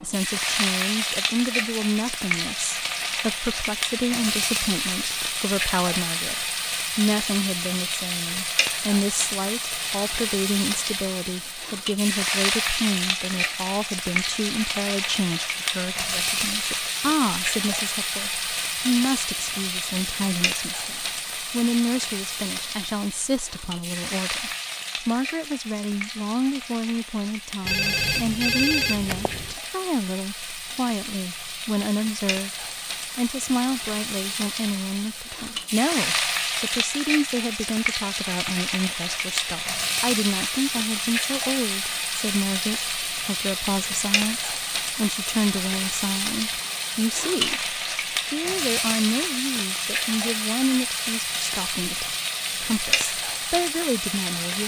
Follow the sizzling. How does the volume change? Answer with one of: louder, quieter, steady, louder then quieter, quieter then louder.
quieter then louder.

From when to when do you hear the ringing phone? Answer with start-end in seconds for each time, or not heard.
27.6-29.6.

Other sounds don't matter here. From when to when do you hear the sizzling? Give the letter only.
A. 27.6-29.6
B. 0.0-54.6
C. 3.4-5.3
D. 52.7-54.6
B.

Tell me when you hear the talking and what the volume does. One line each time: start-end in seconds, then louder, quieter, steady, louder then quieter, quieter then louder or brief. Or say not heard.
0.0-54.6 steady.